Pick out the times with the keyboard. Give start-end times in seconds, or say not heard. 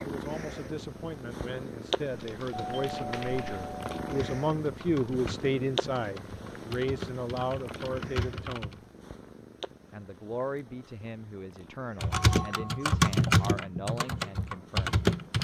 2.0-8.8, 12.0-15.3.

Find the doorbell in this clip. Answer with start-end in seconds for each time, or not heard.
2.5-4.3, 12.1-12.8.